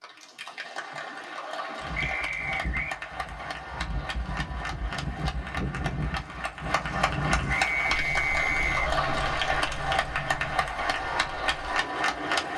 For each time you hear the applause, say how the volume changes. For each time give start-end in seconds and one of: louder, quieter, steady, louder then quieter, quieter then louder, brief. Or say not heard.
0.0-12.5 louder.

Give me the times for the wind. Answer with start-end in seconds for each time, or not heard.
1.8-12.5.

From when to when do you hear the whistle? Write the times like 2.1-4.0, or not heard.
1.9-3.0, 7.5-8.9.